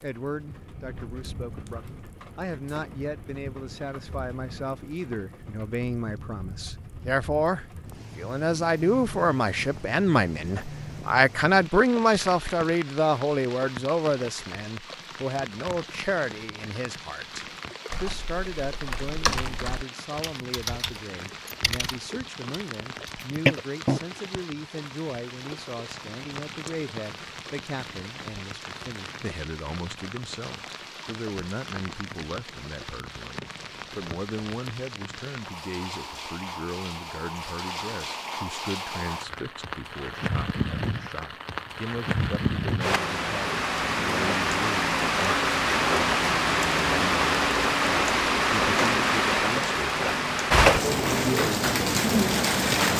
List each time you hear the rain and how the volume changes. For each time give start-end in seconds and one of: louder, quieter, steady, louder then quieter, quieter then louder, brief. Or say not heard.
0.0-52.9 louder.